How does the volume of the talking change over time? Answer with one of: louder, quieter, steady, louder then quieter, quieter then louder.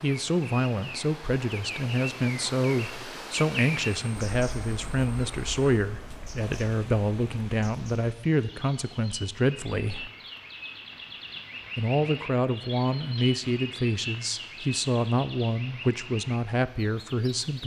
steady.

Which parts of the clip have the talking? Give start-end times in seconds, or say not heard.
0.0-10.1, 11.8-17.6.